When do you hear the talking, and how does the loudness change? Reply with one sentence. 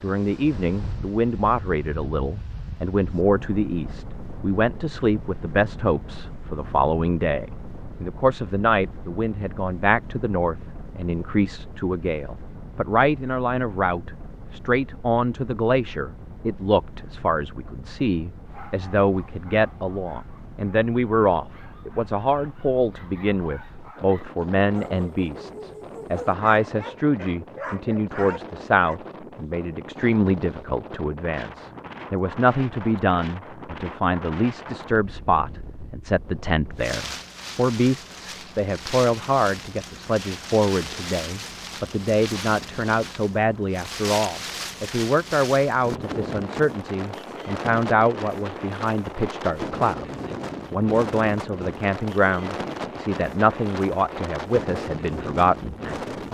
You can hear the talking from 0.0 to 56.2 s, at a steady volume.